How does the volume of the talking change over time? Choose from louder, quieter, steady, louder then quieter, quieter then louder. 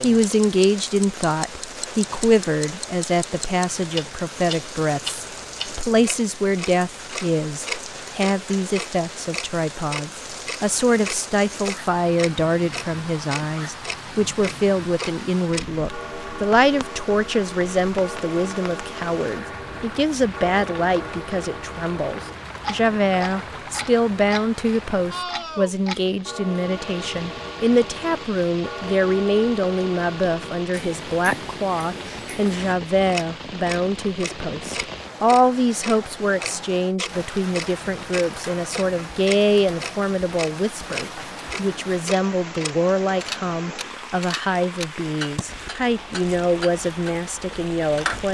steady.